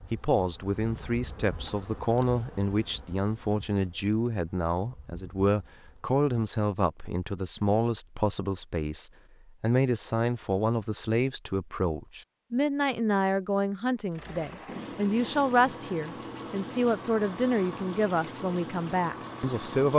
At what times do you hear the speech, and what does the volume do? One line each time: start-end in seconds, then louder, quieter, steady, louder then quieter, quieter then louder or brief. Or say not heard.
0.0-19.9 steady.